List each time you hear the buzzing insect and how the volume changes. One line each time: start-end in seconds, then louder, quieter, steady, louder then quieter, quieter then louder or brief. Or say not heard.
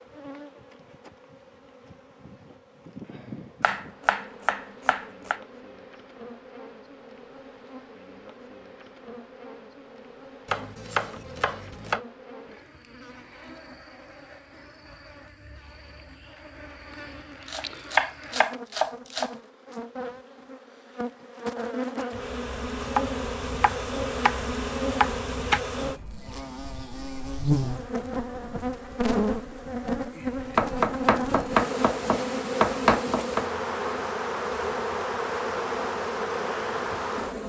0.0-37.4 louder.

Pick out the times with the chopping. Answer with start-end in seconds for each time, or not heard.
3.6-5.3, 10.4-12.0, 17.5-19.3, 22.8-25.6, 30.6-33.5.